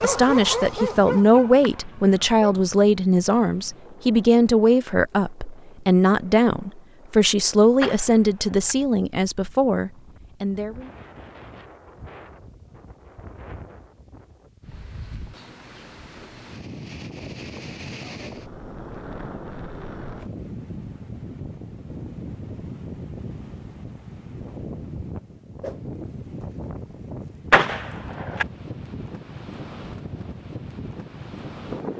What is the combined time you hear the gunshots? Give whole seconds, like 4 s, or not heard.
2 s.